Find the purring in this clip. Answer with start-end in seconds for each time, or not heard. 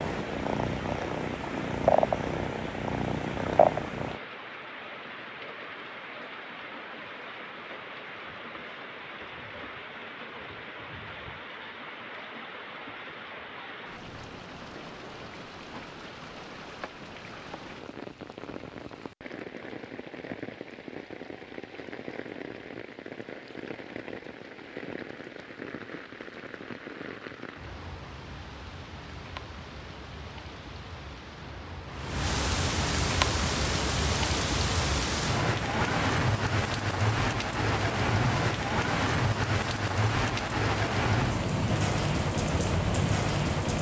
0.0-4.2.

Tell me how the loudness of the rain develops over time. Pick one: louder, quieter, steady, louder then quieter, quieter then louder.
louder.